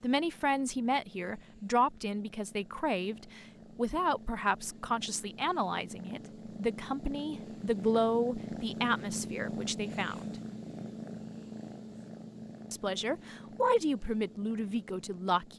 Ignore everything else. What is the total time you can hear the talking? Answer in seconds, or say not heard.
13 s.